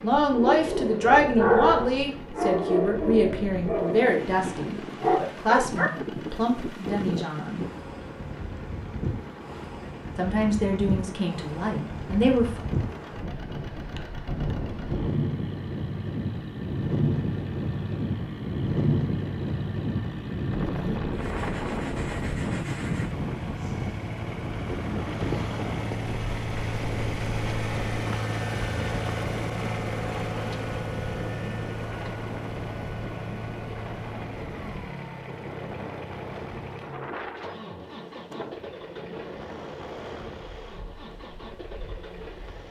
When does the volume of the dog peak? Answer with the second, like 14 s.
2 s.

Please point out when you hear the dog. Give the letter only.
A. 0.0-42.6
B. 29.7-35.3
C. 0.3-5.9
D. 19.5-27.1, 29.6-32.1
C.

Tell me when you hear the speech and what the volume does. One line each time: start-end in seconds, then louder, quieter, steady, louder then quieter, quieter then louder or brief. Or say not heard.
0.0-7.7 quieter
10.2-12.6 brief.